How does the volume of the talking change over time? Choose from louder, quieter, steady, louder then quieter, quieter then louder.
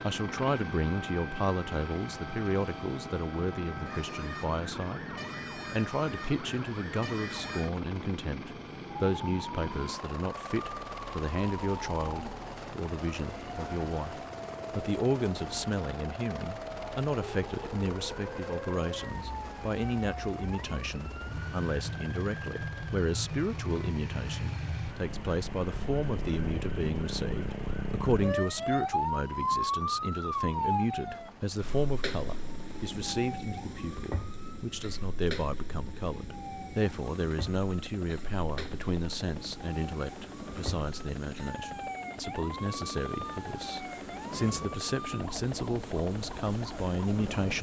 steady.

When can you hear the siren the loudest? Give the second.
29 s.